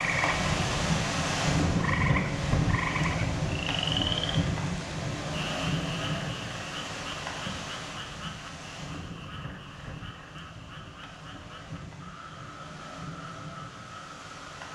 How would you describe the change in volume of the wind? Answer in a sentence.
The volume of the wind goes down.